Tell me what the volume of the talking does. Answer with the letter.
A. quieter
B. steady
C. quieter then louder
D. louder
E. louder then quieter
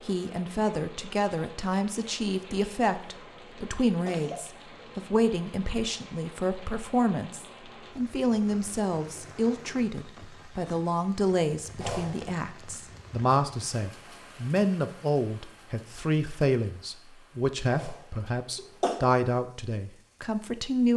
B.